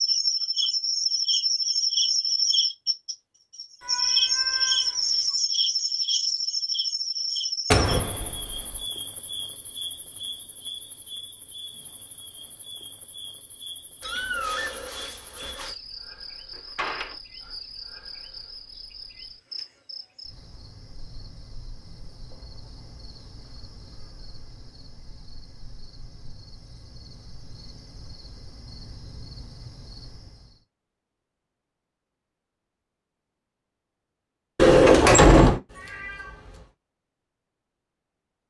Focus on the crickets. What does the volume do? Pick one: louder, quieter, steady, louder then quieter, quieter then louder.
quieter.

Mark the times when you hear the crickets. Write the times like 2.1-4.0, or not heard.
0.0-30.6.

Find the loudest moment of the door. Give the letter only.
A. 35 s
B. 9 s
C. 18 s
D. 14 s
A.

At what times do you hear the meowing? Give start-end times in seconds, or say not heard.
3.8-5.3, 14.0-15.8, 35.6-36.7.